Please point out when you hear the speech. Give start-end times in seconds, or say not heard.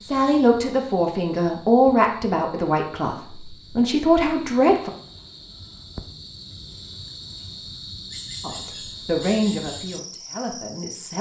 0.1-4.9, 8.4-11.1.